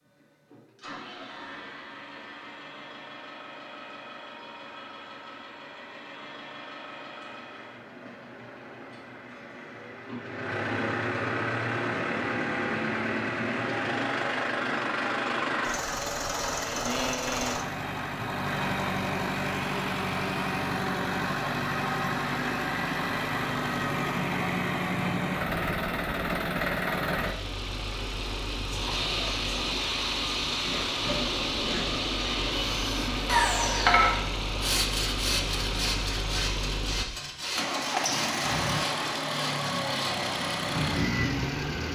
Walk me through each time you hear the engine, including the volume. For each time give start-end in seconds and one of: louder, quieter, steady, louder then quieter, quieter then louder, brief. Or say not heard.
0.0-41.8 louder.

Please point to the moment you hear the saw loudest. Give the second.
34 s.